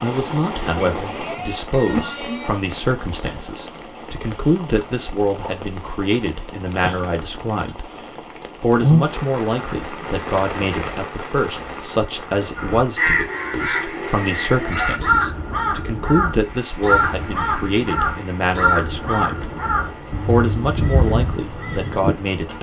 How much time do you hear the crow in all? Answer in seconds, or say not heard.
10 s.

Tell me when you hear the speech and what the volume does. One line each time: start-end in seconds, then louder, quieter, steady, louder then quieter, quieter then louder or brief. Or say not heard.
0.0-7.9 steady
8.6-19.6 steady
20.2-22.5 brief.